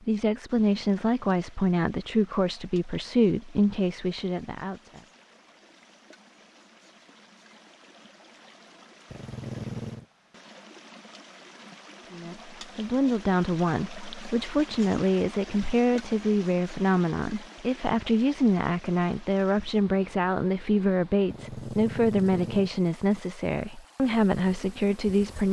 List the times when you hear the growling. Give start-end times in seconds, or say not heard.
9.1-10.1, 21.2-22.7.